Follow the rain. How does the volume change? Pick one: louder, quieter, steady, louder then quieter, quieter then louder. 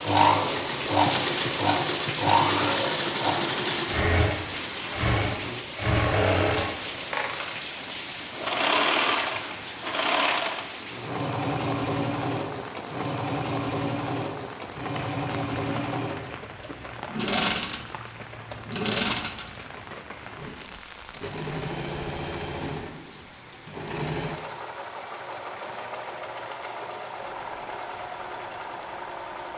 quieter.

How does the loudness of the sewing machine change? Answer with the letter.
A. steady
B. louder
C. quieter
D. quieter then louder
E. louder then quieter
C.